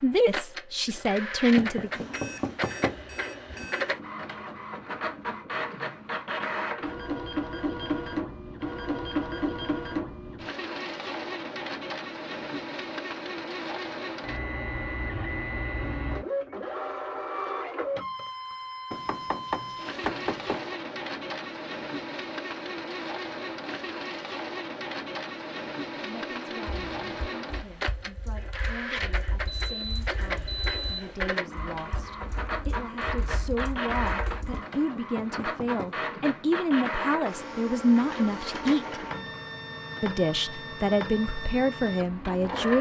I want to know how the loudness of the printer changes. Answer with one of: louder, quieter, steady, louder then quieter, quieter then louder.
steady.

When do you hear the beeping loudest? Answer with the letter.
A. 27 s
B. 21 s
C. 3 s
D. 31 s
D.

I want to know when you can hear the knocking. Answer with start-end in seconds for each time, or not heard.
1.6-3.0, 18.9-20.8, 34.5-36.0.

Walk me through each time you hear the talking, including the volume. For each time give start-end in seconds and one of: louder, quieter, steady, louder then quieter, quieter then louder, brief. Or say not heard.
0.0-2.1 brief
26.0-39.0 louder
40.0-42.7 brief.